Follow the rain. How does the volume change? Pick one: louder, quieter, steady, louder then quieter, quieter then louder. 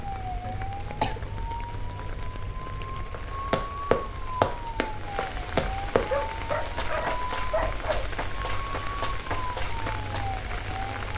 louder.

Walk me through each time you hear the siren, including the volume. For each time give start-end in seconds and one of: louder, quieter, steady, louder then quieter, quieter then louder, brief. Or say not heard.
0.0-11.1 steady.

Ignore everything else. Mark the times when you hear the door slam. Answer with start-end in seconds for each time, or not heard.
not heard.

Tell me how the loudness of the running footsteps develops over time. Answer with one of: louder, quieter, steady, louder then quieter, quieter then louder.
quieter.